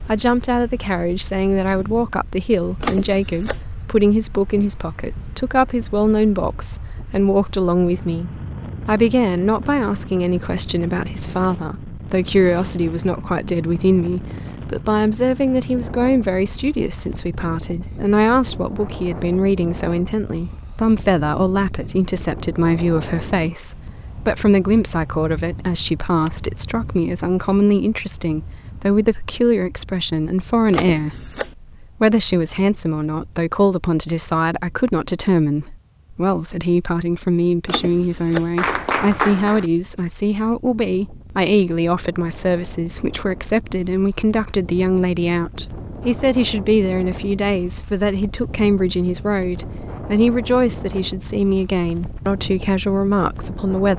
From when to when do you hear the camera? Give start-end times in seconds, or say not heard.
2.8-3.6, 30.7-31.5, 37.6-38.5.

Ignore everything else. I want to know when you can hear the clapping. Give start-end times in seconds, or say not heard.
38.5-39.7.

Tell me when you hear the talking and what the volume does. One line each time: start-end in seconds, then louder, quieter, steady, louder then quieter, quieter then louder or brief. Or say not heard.
0.1-53.9 steady.